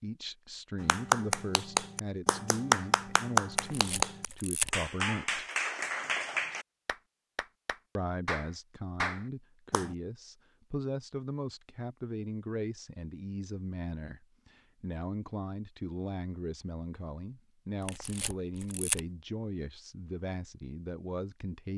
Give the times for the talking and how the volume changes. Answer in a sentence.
The talking can be heard from 0.0 to 5.5 s, at a steady volume; and from 8.0 to 21.7 s, at a steady volume.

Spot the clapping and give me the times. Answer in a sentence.
You can hear the clapping from 0.8 to 9.9 s.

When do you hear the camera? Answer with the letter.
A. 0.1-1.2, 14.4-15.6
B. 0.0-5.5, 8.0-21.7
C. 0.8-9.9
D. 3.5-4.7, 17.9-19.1
D.